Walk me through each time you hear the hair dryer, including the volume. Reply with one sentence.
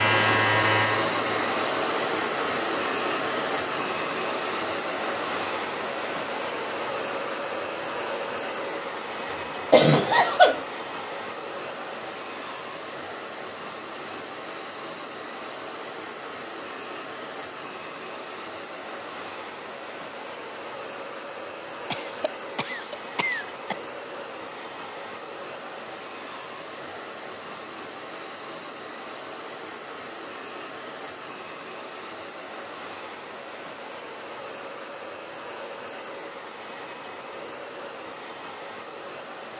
You can hear the hair dryer from 0.0 to 39.5 s, getting quieter.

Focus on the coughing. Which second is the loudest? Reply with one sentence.
The volume of the coughing peaks at 10 seconds.